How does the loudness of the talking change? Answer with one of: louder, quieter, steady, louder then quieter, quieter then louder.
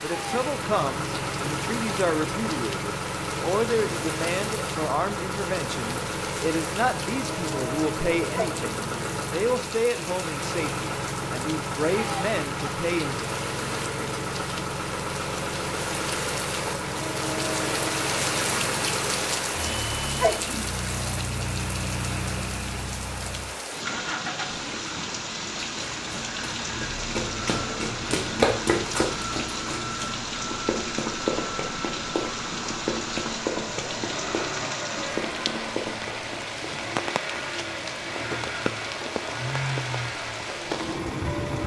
steady.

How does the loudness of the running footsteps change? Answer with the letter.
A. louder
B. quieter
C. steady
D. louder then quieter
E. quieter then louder
D.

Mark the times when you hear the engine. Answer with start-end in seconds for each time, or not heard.
0.0-41.6.